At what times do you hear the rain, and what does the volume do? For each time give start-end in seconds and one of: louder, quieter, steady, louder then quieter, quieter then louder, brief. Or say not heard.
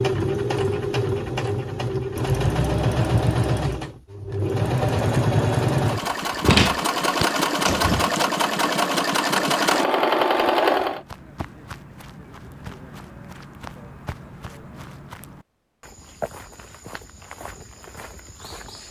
not heard.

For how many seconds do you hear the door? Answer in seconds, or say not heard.
2 s.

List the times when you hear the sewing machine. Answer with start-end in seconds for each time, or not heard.
0.0-11.0.